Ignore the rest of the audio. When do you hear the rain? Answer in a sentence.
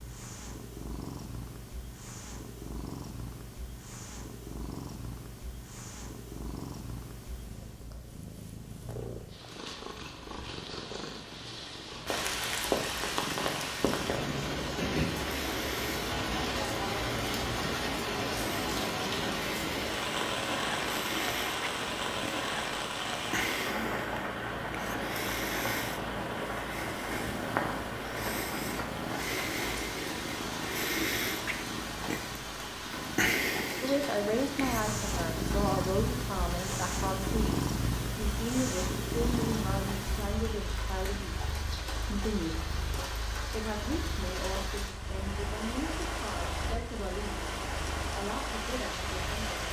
The rain can be heard from 12.1 to 49.6 s.